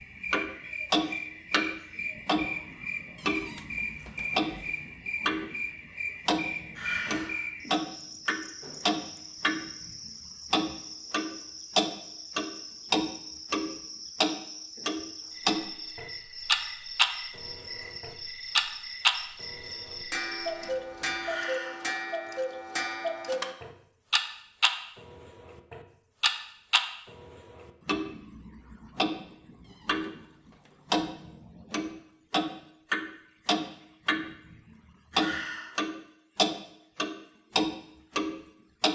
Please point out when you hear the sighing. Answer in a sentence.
You can hear the sighing from 6.8 to 7.5 s, from 21.2 to 21.9 s and from 35.1 to 35.8 s.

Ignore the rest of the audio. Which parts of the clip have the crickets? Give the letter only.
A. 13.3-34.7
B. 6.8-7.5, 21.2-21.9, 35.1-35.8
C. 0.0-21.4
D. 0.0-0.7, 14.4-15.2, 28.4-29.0
C.